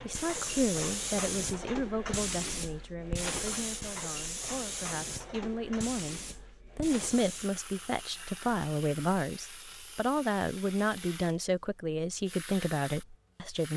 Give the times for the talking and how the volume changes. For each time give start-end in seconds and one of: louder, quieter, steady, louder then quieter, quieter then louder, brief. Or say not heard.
0.0-13.7 quieter then louder.